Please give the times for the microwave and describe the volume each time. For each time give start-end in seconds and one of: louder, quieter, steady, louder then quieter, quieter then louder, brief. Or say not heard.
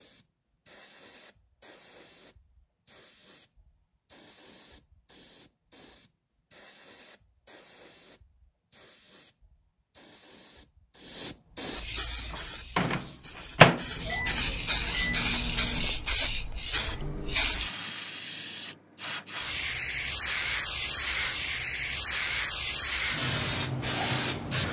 12.3-17.4 louder then quieter.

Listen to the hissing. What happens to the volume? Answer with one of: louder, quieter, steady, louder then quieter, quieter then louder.
louder.